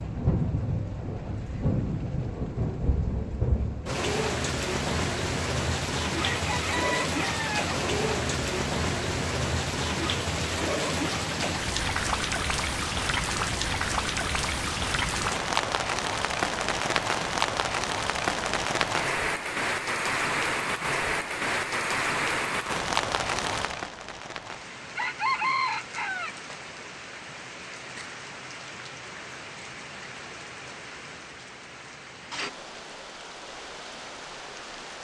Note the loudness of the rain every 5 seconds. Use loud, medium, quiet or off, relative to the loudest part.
loud, loud, loud, loud, loud, quiet, quiet.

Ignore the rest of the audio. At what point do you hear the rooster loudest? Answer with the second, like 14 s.
25 s.